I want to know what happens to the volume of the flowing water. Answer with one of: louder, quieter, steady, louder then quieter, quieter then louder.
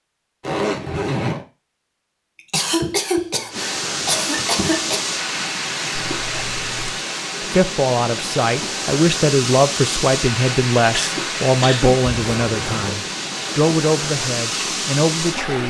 steady.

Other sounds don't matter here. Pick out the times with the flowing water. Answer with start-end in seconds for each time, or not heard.
3.5-15.6.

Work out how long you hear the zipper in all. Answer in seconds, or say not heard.
3 s.